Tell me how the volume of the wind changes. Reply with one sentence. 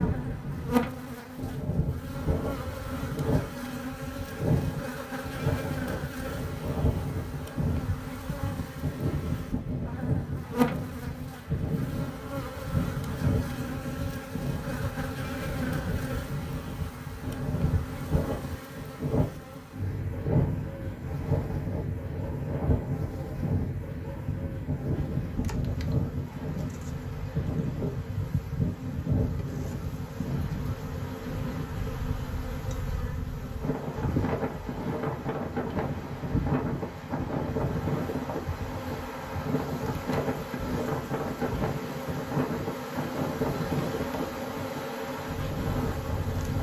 The loudness of the wind stays about the same.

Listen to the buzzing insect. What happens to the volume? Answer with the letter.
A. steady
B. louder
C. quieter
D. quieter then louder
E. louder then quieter
A.